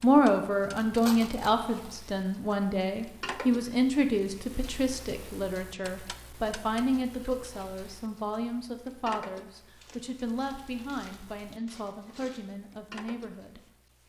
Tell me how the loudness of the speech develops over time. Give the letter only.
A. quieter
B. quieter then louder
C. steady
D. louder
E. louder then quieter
A.